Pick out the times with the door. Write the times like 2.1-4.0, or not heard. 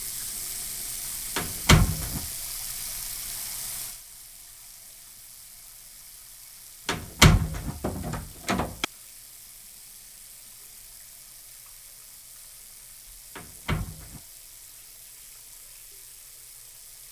1.4-2.2, 6.8-8.8, 13.3-14.2.